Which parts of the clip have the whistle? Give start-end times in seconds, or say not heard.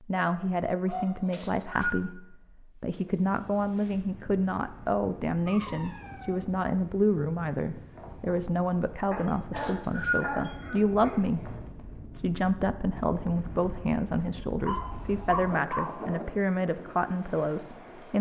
1.3-2.0, 9.6-10.3.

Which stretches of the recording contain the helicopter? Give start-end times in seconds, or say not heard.
not heard.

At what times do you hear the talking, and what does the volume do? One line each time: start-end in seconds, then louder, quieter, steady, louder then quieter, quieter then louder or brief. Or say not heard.
0.0-18.1 steady.